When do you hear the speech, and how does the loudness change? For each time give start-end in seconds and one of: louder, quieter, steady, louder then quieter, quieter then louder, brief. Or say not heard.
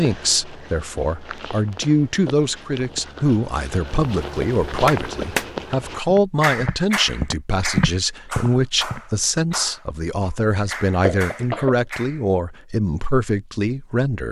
0.0-14.2 steady.